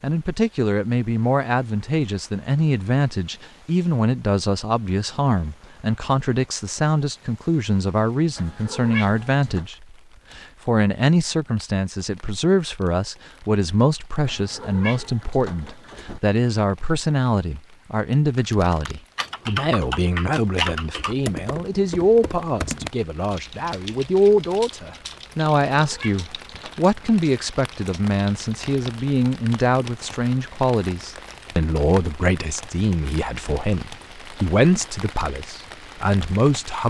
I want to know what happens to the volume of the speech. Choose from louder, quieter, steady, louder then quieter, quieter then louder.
steady.